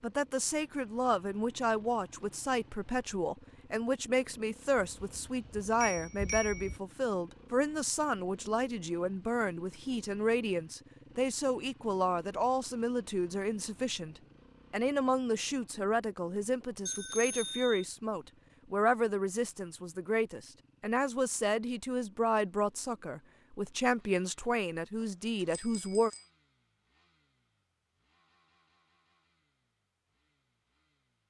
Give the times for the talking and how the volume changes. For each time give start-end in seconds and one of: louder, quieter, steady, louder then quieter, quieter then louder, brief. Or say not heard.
0.0-26.1 steady.